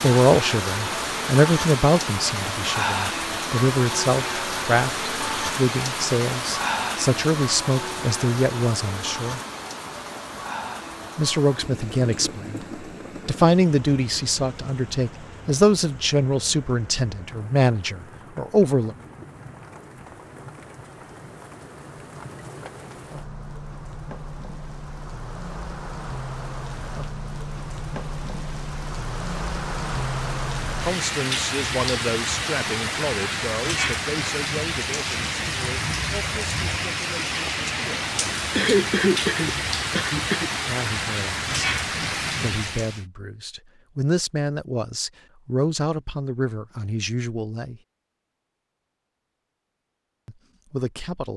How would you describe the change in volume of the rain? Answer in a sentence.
The loudness of the rain goes down, then up.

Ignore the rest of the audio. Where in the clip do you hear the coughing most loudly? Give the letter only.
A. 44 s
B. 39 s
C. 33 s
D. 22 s
B.